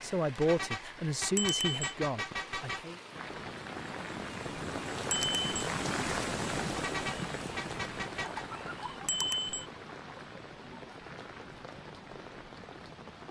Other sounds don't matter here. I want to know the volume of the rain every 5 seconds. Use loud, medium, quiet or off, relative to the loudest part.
medium, loud, medium.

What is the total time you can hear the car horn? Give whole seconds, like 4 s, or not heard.
4 s.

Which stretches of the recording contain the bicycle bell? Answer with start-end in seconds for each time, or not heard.
1.4-1.9, 5.1-5.7, 9.1-9.7.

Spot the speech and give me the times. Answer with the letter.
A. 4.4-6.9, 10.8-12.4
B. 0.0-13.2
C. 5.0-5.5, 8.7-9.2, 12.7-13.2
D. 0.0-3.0
D.